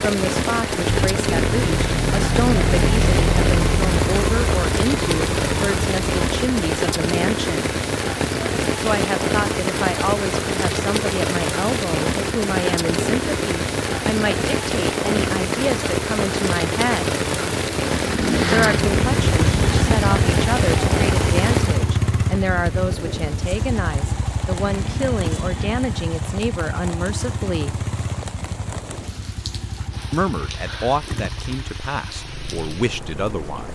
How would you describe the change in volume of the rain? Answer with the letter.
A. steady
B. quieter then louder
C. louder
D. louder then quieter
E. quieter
E.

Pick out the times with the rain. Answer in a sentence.
You can hear the rain from 0.0 to 33.7 s.